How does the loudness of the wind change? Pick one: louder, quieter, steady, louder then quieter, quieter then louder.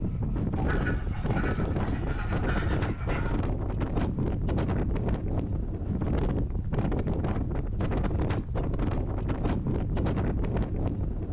steady.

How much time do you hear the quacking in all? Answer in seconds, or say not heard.
3 s.